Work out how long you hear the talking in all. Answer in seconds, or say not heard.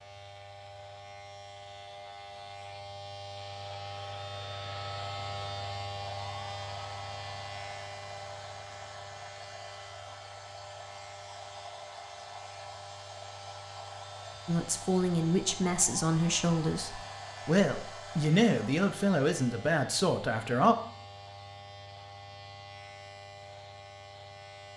6 s.